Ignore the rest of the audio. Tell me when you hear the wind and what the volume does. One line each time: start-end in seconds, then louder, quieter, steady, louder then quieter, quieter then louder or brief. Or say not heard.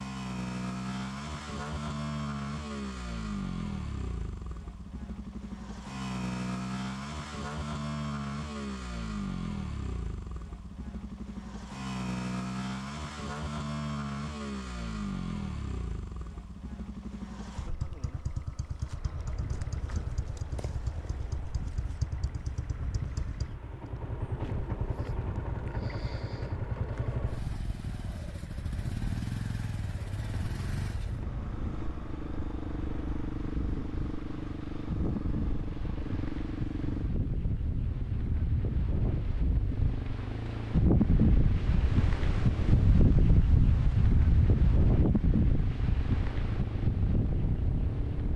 18.8-48.3 louder.